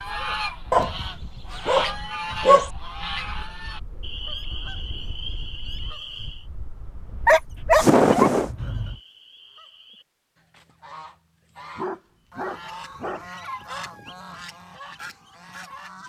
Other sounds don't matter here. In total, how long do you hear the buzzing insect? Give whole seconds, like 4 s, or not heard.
not heard.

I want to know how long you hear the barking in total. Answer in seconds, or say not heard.
5 s.